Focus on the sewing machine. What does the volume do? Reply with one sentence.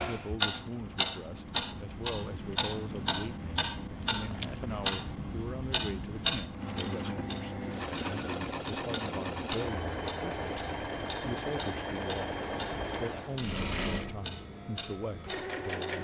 The volume of the sewing machine goes up.